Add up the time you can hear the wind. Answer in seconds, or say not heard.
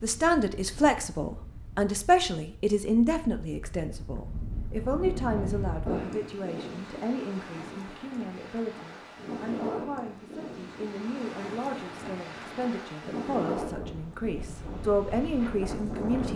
16 s.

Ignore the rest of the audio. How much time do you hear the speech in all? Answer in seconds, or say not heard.
16 s.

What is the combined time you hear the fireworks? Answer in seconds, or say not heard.
not heard.